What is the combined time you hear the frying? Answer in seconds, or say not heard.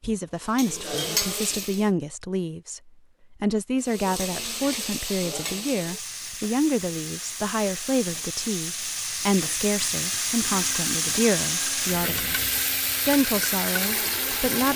13 s.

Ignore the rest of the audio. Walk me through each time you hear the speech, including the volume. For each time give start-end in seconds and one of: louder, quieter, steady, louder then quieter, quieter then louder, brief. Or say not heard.
0.0-12.3 steady
13.1-14.7 brief.